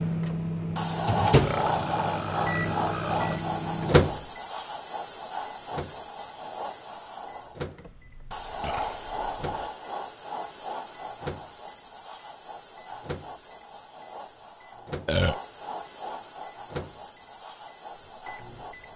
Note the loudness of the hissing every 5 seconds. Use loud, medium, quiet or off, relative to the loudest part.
loud, medium, medium, medium.